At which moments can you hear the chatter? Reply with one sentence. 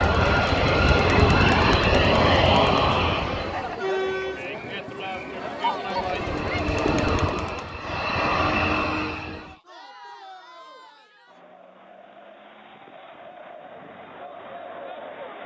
You can hear the chatter from 0.1 to 15.4 s.